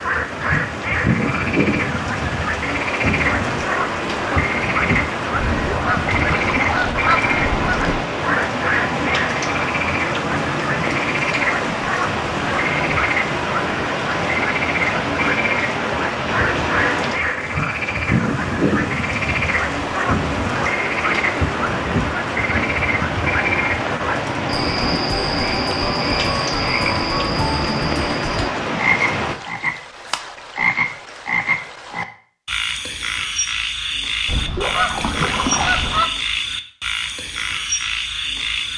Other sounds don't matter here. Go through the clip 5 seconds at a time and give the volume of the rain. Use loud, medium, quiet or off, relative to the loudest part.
loud, loud, loud, loud, loud, loud, off, off.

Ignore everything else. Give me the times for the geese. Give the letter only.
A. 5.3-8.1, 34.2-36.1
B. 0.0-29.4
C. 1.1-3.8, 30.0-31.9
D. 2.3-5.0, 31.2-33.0
A.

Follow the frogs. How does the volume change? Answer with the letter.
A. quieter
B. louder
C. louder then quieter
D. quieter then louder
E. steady
E.